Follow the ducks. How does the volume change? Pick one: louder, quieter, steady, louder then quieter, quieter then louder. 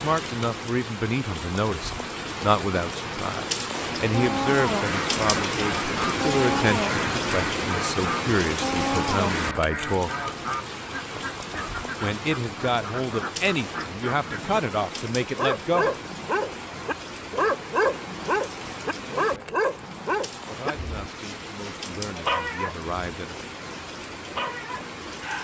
quieter.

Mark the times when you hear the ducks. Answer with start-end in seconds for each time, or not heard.
4.1-14.6.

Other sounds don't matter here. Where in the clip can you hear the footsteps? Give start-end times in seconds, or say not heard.
not heard.